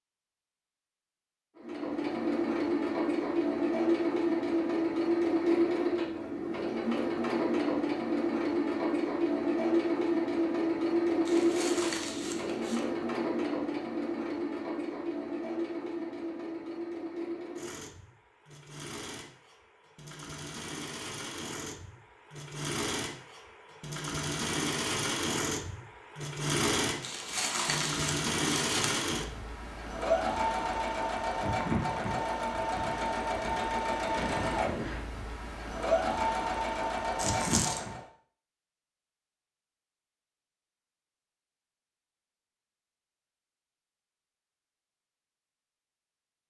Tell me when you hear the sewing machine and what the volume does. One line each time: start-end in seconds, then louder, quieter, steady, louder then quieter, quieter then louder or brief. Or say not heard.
1.6-38.0 quieter then louder.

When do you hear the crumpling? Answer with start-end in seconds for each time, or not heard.
11.2-12.8, 27.0-29.1, 37.1-37.8.